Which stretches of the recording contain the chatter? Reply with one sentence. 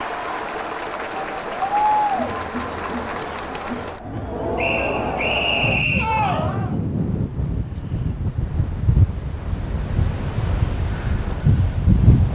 You can hear the chatter from 0.0 to 6.8 s.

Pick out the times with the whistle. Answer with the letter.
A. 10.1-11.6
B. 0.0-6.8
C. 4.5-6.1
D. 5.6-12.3
C.